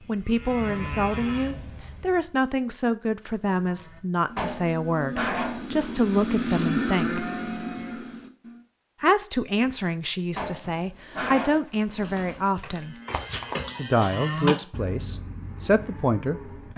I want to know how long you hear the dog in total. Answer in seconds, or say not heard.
3 s.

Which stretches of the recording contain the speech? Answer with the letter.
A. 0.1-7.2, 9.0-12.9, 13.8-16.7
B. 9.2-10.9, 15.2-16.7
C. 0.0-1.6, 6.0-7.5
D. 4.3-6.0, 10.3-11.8
A.